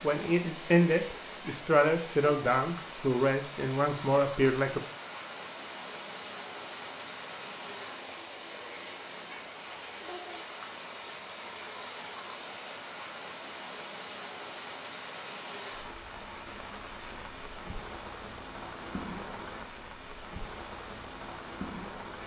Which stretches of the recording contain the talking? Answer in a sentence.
You can hear the talking from 0.0 to 4.8 s.